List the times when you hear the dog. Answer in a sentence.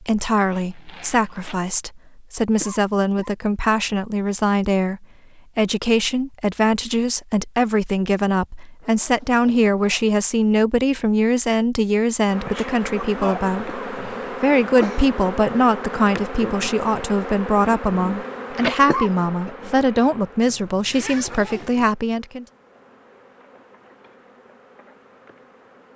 You can't hear the dog here.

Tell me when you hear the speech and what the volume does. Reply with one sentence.
You can hear the speech from 0.0 to 22.4 s, at a steady volume.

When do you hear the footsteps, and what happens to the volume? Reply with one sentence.
The footsteps can't be heard in this clip.